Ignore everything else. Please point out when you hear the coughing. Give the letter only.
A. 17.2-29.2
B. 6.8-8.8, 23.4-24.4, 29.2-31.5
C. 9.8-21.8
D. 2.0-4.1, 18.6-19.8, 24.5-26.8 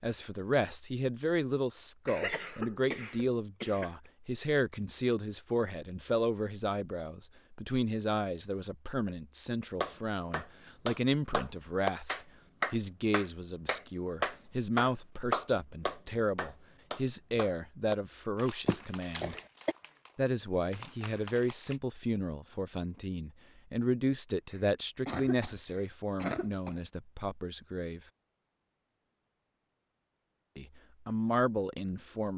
D.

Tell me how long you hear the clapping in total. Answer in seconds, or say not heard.
12 s.